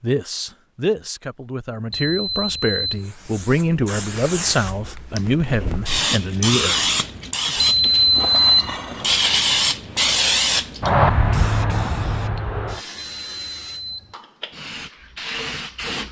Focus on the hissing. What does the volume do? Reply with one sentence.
The loudness of the hissing goes up, then down.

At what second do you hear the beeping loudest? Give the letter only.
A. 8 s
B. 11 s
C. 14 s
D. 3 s
A.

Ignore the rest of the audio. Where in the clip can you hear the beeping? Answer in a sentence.
You can hear the beeping from 1.9 to 3.1 s, from 7.5 to 8.8 s and from 12.9 to 14.2 s.